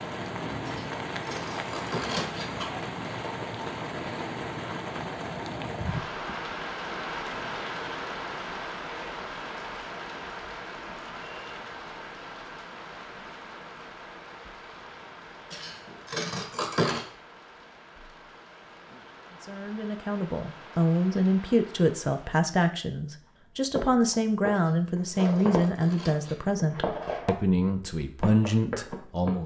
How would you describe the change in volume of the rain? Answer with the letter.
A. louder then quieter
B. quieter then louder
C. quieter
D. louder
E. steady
C.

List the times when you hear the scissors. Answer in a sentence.
The scissors can be heard from 0.7 to 2.6 s, from 15.5 to 17.1 s and from 24.5 to 26.4 s.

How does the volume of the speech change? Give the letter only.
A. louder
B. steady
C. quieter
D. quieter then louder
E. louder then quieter
B.